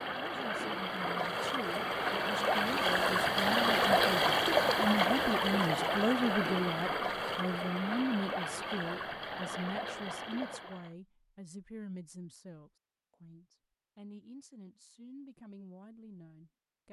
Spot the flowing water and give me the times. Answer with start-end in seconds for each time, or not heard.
0.0-10.9.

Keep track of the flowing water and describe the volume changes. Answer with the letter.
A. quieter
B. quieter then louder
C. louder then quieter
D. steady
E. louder
C.